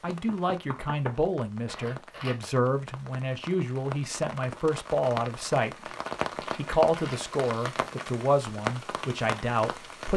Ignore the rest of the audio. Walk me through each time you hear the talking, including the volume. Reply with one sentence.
The talking can be heard from 0.0 to 10.1 s, at a steady volume.